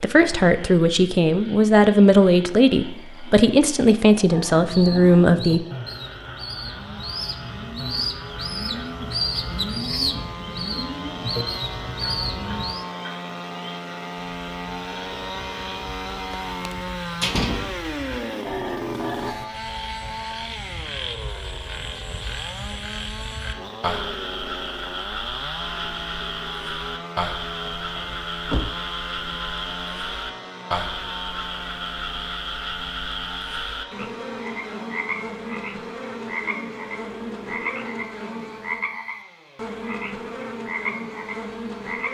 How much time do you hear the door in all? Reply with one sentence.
The door can be heard for 3 seconds in total.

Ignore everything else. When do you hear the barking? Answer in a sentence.
The barking can't be heard in this clip.